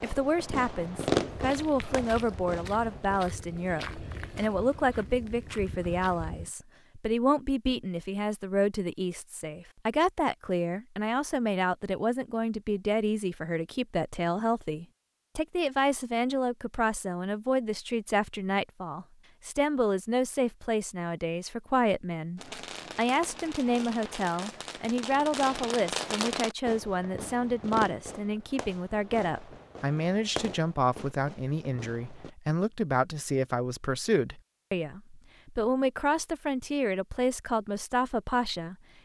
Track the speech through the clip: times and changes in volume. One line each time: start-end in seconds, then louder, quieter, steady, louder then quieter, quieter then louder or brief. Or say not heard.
0.0-38.8 steady.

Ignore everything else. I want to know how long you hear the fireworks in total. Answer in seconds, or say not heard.
13 s.